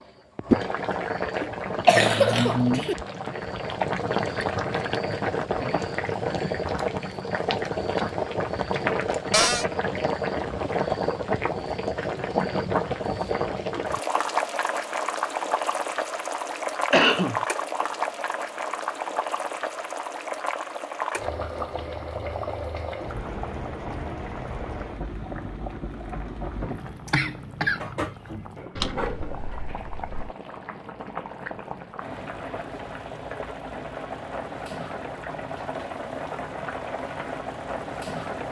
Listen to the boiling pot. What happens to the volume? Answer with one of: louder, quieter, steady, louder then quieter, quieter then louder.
quieter.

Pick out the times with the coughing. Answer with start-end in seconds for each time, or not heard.
1.9-3.0, 16.9-17.4, 26.6-27.9.